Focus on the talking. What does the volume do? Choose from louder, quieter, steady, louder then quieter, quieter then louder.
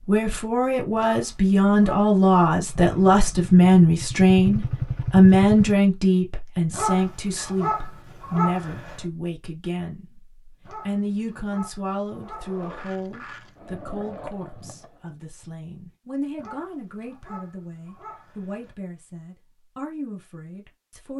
quieter.